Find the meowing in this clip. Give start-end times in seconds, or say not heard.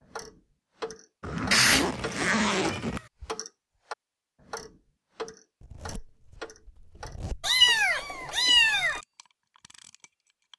1.5-3.0, 7.4-9.0.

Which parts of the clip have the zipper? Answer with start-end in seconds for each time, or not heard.
1.2-3.0, 5.6-7.5.